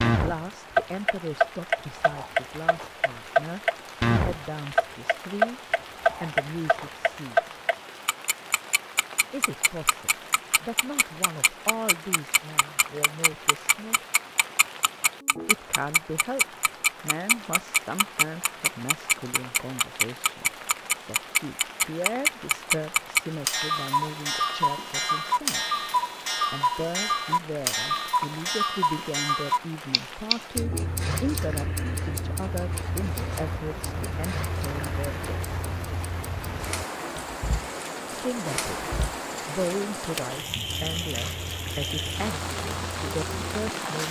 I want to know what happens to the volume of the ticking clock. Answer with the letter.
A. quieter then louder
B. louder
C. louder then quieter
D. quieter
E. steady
D.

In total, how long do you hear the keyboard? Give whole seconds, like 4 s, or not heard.
not heard.